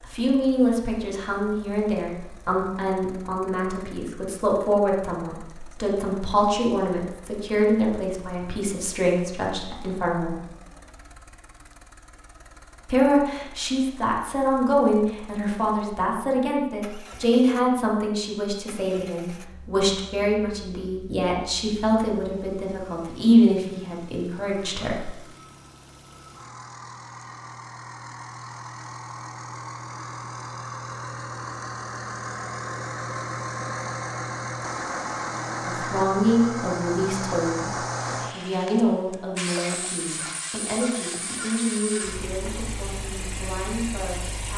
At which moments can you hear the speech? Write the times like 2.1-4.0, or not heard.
0.1-10.4, 12.8-25.1, 35.6-44.5.